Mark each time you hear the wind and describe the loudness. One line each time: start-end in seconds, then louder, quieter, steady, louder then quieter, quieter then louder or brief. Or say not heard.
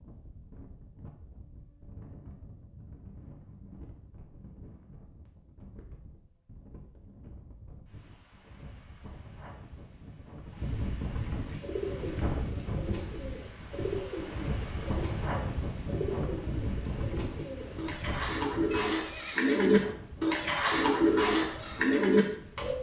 0.0-22.7 louder then quieter.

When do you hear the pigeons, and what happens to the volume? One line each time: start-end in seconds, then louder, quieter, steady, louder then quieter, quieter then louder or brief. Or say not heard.
11.4-22.7 louder.